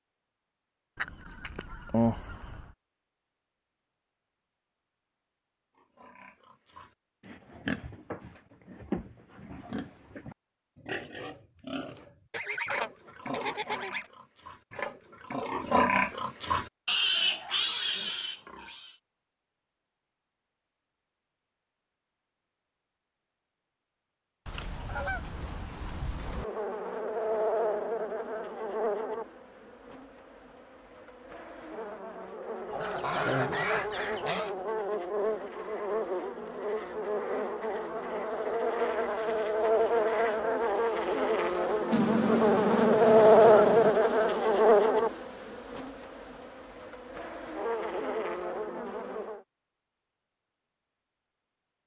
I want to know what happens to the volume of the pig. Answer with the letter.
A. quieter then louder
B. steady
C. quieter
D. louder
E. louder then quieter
D.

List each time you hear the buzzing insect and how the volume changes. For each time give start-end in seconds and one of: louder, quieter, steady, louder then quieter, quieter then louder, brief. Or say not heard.
26.2-49.4 louder then quieter.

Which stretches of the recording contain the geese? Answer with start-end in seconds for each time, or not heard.
0.9-2.7, 12.3-14.1, 24.4-26.4, 32.7-34.5, 41.9-44.0.